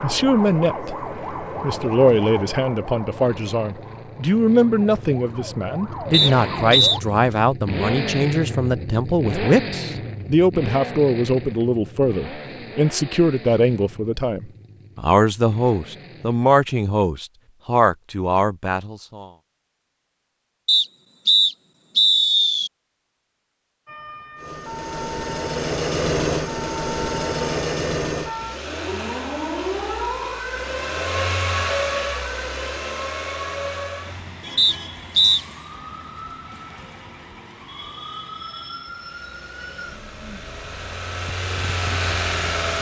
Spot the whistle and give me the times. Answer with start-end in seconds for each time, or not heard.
6.1-7.0, 20.6-22.7, 34.5-35.4.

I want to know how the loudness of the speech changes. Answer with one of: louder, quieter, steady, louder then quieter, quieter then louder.
steady.